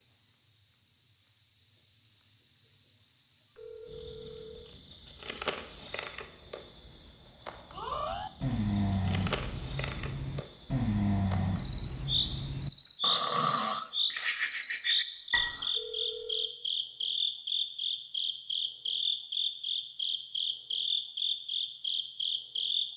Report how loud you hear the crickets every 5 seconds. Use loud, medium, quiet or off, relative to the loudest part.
medium, medium, loud, loud, loud.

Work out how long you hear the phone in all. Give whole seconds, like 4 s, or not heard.
2 s.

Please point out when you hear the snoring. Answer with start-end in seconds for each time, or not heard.
7.8-15.8.